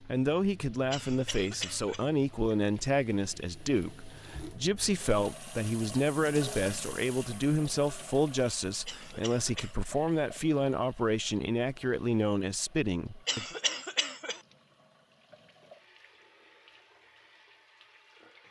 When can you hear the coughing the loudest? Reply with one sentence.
The loudest moment of the coughing is at 14 seconds.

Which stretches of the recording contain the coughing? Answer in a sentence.
The coughing can be heard from 0.9 to 2.0 s, from 8.8 to 9.8 s and from 13.2 to 14.4 s.